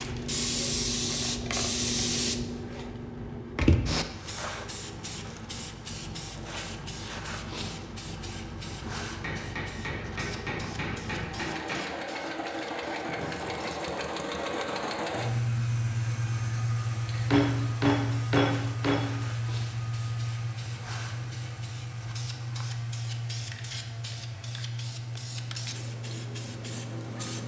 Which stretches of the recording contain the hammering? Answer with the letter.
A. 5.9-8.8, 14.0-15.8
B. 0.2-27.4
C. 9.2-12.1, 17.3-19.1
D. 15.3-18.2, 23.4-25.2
C.